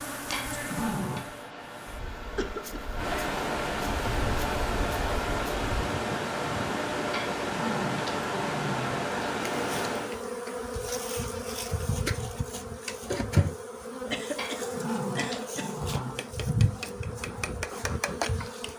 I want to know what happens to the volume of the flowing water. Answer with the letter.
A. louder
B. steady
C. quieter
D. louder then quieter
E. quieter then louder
A.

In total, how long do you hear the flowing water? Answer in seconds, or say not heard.
10 s.